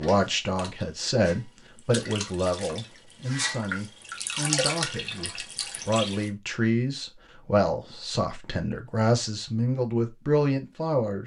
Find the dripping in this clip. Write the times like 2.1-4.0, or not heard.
0.0-6.3.